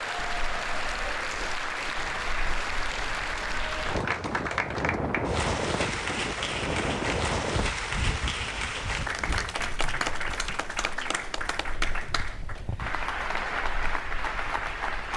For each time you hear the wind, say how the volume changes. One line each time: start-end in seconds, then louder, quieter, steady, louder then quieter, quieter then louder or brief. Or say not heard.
0.0-15.1 louder then quieter.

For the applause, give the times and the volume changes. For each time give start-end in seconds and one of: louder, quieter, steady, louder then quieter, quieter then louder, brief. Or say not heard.
0.0-15.1 steady.